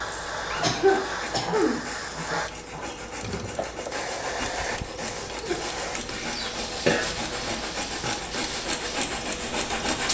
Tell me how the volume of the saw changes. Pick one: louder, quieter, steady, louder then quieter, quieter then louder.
louder.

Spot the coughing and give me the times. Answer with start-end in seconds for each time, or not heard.
0.6-1.8, 5.4-7.0.